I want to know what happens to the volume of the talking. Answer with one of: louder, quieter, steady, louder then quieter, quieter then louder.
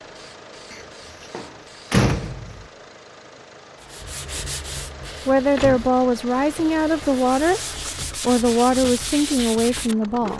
steady.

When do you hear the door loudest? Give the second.
2 s.